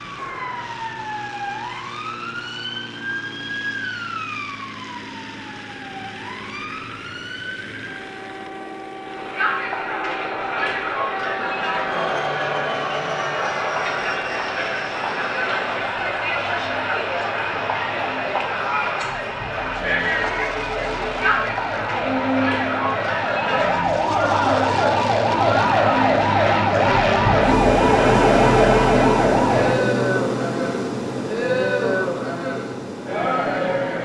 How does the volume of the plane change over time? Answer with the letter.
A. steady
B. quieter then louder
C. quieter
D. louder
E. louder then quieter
D.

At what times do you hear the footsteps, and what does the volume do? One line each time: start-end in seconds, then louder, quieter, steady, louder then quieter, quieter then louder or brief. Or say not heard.
not heard.